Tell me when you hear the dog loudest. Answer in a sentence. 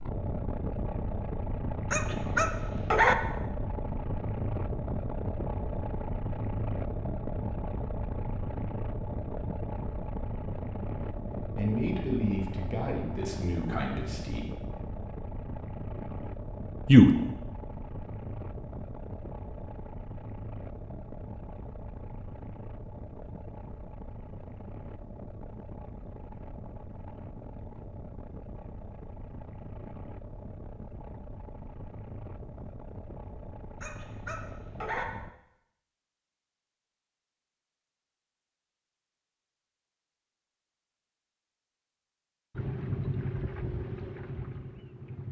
The loudest moment of the dog is at 3 seconds.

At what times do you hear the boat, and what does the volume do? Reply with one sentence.
The boat can be heard from 0.0 to 35.3 s, getting quieter; and briefly from 42.5 to 45.2 s.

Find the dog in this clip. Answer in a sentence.
You can hear the dog from 1.9 to 3.1 s and from 33.8 to 35.0 s.